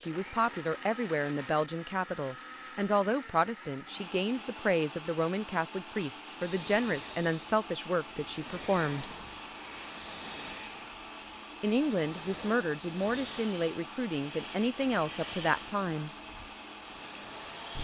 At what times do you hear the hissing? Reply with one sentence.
The hissing can be heard from 6.2 to 17.7 s.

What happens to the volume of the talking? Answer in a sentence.
The volume of the talking stays about the same.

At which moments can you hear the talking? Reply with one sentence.
You can hear the talking from 0.0 to 9.1 s and from 11.6 to 16.1 s.